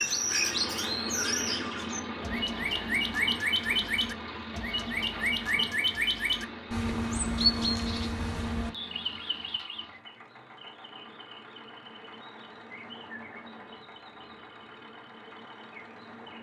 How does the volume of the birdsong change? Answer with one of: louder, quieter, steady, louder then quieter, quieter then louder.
quieter.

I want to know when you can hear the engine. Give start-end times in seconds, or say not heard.
0.0-16.3.